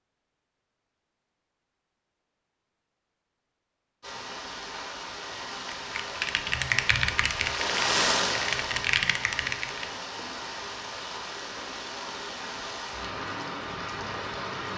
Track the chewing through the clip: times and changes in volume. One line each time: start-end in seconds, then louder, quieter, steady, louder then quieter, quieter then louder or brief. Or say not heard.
not heard.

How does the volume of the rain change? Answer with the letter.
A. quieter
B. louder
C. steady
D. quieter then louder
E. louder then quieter
E.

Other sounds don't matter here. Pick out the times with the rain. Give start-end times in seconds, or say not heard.
4.0-14.7.